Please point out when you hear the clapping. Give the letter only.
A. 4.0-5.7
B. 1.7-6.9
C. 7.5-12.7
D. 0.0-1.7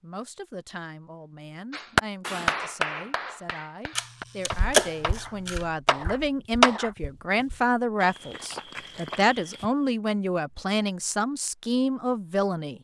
B.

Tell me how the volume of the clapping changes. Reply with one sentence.
The volume of the clapping goes down, then up.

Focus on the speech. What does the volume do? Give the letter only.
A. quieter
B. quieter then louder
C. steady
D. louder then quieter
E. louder
E.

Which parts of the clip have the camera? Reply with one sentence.
The camera can be heard from 4.0 to 5.7 s.